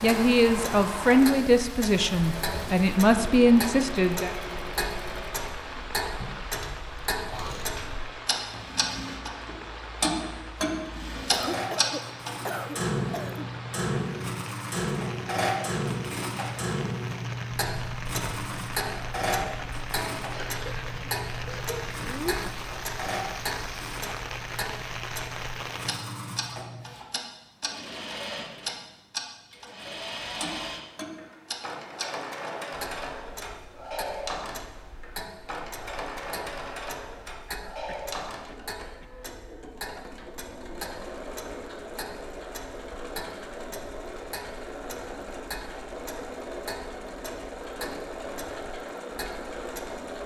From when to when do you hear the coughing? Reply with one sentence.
You can hear the coughing from 11.3 to 13.5 s, from 20.3 to 22.4 s and from 37.5 to 39.1 s.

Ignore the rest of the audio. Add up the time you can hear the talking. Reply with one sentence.
The talking can be heard for 4 seconds in total.